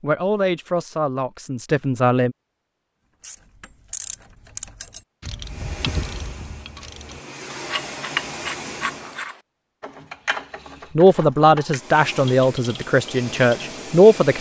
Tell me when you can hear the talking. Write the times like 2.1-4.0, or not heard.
0.0-2.4, 10.9-14.3.